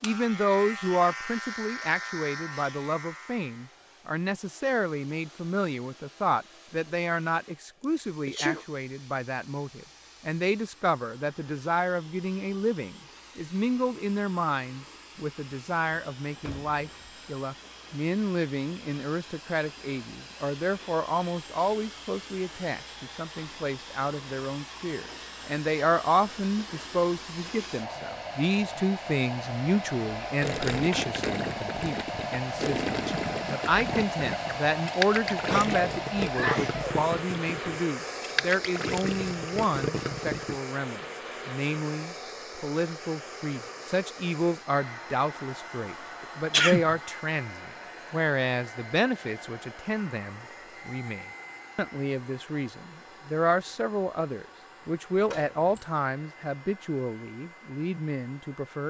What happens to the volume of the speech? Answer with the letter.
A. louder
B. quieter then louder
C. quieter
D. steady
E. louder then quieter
D.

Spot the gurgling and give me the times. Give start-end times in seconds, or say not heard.
30.4-40.6.